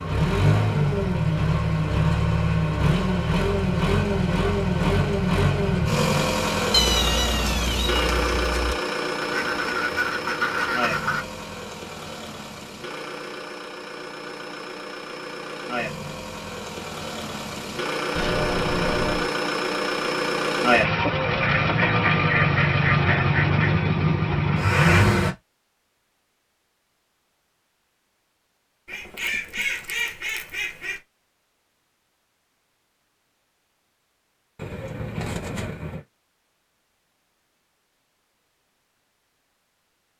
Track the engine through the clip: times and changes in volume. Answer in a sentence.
You can hear the engine from 0.0 to 25.4 s, getting quieter then louder.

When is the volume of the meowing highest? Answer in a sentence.
The loudest moment of the meowing is at 7 seconds.